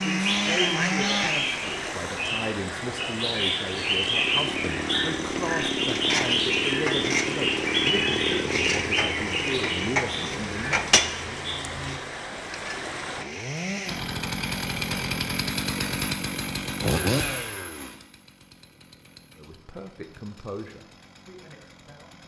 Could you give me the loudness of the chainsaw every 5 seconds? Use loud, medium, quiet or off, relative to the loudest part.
loud, loud, loud, loud, quiet.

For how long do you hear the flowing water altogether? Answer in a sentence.
The flowing water can be heard for 13 seconds in total.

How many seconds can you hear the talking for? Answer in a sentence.
The talking can be heard for 14 seconds in total.